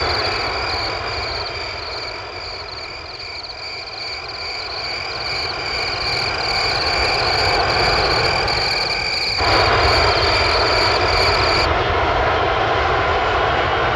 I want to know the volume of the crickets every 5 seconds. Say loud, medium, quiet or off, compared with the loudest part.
medium, loud, loud.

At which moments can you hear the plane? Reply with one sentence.
You can hear the plane from 0.0 to 13.9 s.